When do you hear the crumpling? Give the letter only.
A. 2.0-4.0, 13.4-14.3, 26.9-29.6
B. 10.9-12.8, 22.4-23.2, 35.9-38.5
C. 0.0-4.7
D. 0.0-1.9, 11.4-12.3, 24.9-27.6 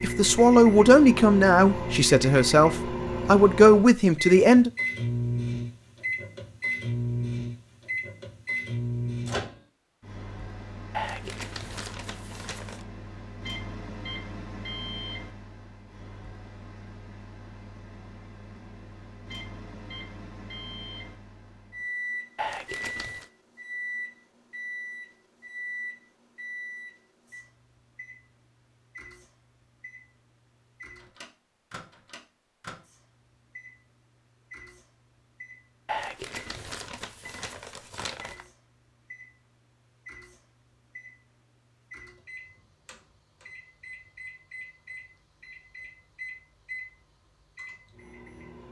B.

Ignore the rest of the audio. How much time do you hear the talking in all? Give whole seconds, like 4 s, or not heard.
5 s.